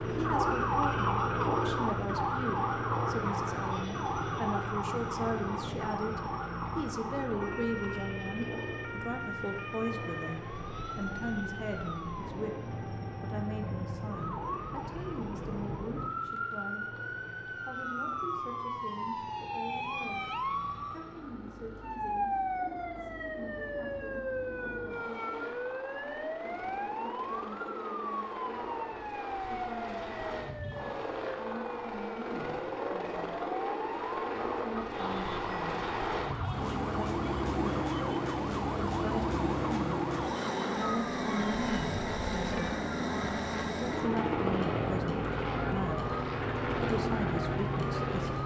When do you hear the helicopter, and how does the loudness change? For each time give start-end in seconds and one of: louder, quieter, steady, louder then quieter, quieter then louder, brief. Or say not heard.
0.0-48.4 quieter then louder.